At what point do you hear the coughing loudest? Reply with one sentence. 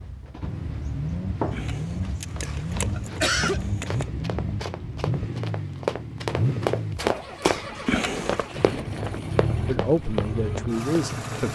The loudest moment of the coughing is at 3 seconds.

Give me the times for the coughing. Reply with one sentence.
You can hear the coughing from 2.5 to 3.6 s and from 7.5 to 8.0 s.